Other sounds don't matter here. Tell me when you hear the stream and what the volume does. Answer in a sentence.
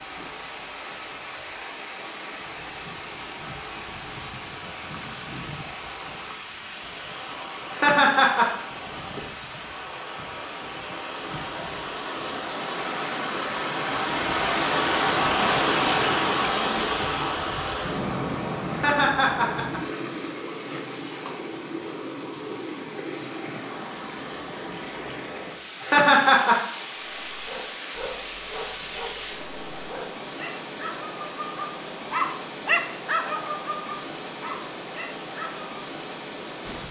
The stream can be heard from 0.0 to 36.8 s, getting louder then quieter.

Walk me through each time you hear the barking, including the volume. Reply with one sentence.
The barking can be heard from 27.2 to 35.8 s, getting louder then quieter.